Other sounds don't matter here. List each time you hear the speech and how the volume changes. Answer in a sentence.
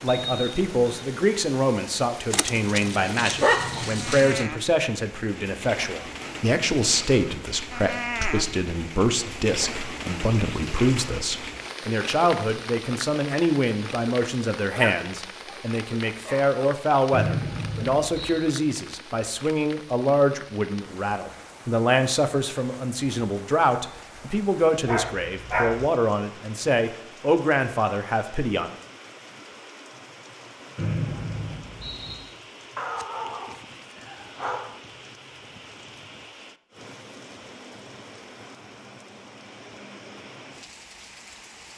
The speech can be heard from 0.0 to 28.7 s, at a steady volume.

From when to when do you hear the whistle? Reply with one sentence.
The whistle can be heard from 0.1 to 1.1 s, from 17.1 to 18.4 s and from 30.8 to 32.2 s.